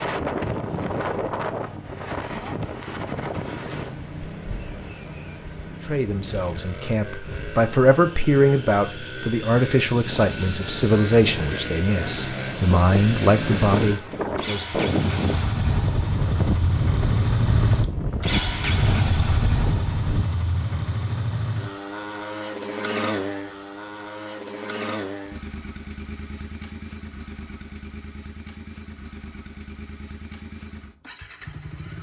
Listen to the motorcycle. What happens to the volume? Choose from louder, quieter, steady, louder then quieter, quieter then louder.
louder then quieter.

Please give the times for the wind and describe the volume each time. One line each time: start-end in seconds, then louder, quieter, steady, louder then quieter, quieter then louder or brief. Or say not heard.
0.0-20.2 quieter then louder.